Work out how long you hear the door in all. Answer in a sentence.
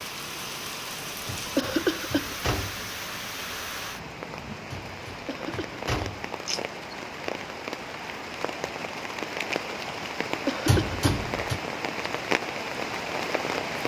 You can hear the door for 4 seconds altogether.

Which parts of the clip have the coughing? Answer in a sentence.
You can hear the coughing from 1.6 to 2.3 s, from 5.2 to 5.8 s and from 10.4 to 11.0 s.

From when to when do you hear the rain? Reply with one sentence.
You can hear the rain from 0.0 to 13.8 s.